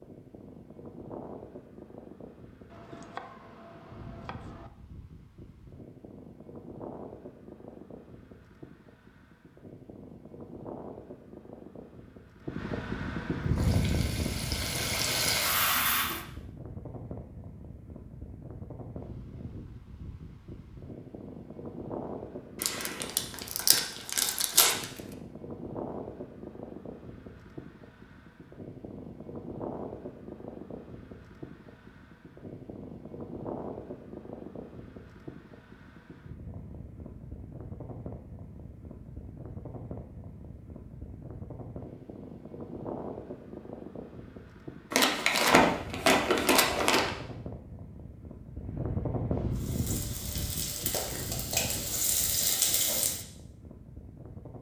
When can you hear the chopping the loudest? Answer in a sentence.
The loudest moment of the chopping is at 3 seconds.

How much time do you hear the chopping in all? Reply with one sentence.
The chopping can be heard for 2 seconds in total.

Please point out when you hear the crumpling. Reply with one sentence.
You can hear the crumpling from 22.6 to 24.9 s and from 44.9 to 47.1 s.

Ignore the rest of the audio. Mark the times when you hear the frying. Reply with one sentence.
You can hear the frying from 13.4 to 16.2 s and from 49.5 to 53.2 s.